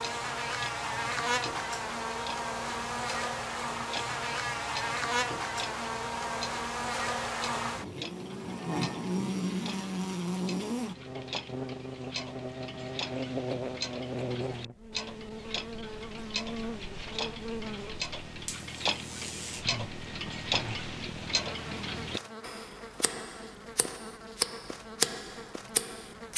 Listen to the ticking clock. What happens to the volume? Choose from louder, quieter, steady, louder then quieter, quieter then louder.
louder.